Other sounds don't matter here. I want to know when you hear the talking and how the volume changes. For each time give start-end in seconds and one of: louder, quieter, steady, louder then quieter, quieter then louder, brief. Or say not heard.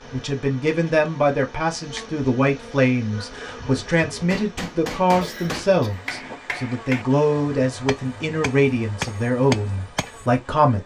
0.1-10.8 steady.